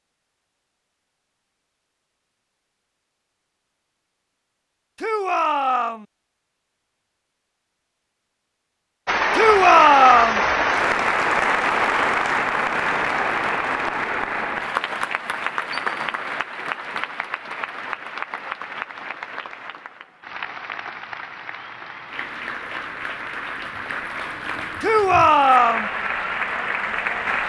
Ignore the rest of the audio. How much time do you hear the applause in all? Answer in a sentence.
You can hear the applause for 18 seconds altogether.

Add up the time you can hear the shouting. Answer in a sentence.
You can hear the shouting for 3 seconds altogether.